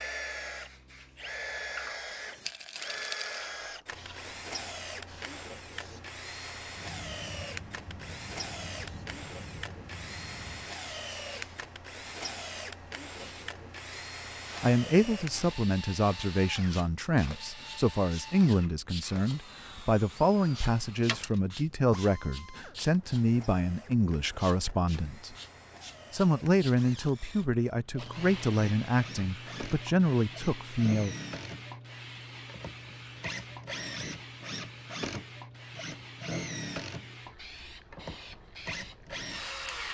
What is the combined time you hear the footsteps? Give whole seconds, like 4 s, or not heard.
not heard.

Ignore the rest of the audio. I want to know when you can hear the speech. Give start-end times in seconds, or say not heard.
14.6-25.4, 26.1-31.1.